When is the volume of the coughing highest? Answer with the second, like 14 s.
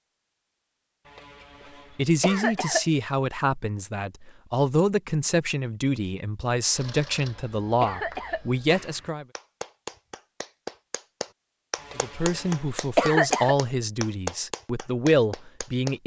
13 s.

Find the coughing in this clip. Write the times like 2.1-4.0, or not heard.
1.1-2.9, 6.7-8.4, 11.8-13.6.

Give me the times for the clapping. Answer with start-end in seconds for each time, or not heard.
7.9-15.9.